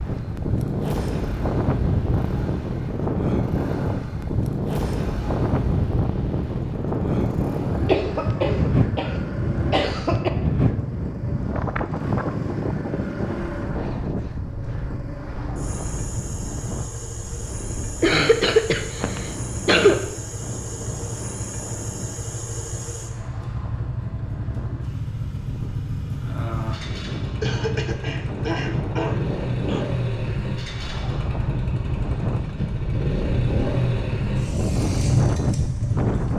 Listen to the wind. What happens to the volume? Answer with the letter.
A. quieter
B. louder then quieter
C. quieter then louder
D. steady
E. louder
C.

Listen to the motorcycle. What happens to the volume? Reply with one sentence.
The volume of the motorcycle goes up.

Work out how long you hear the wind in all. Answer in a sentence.
You can hear the wind for 36 seconds altogether.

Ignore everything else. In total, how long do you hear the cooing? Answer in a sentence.
The cooing can't be heard in this clip.